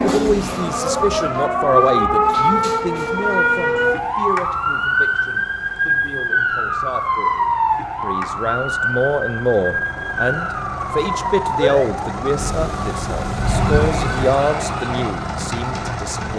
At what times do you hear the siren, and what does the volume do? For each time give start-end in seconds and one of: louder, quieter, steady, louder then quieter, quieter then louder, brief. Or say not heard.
0.0-16.3 quieter.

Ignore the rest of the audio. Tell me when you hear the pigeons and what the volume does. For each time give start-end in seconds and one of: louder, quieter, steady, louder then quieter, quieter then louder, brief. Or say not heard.
not heard.